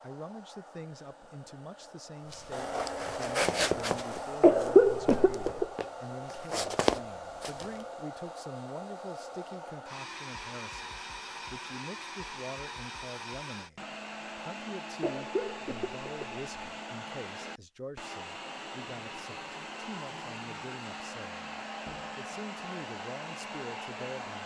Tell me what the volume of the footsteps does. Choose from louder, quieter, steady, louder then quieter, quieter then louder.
quieter then louder.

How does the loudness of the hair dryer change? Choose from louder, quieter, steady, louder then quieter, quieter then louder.
steady.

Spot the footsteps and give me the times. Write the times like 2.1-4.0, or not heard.
2.3-7.8.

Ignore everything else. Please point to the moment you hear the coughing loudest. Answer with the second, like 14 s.
5 s.